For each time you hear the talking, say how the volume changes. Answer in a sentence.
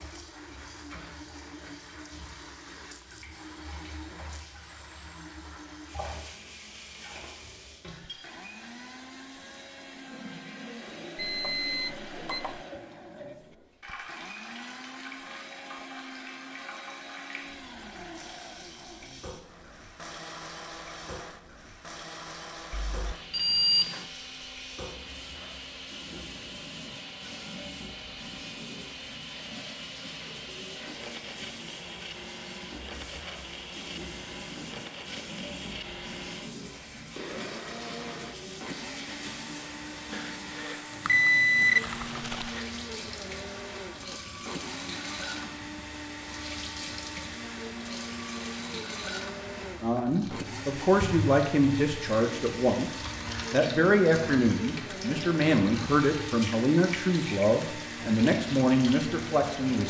The talking can be heard from 49.8 to 59.8 s, at a steady volume.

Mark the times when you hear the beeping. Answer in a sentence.
You can hear the beeping from 11.2 to 12.7 s, from 22.7 to 24.1 s and from 40.1 to 42.6 s.